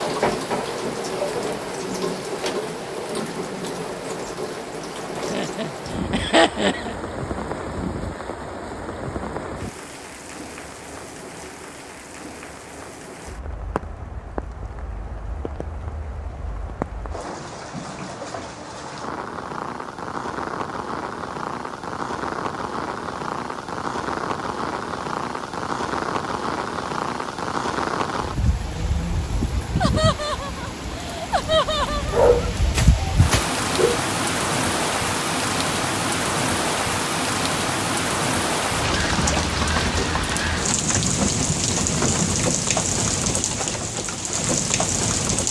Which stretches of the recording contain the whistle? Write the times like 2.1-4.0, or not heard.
not heard.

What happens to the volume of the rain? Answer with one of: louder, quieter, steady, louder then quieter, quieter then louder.
quieter then louder.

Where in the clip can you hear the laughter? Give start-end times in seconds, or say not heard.
5.3-7.0, 29.8-32.2.